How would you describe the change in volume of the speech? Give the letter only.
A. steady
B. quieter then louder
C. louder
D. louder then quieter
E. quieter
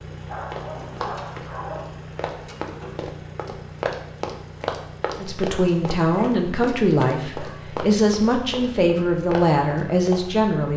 A.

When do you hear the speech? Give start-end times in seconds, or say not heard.
5.2-10.7.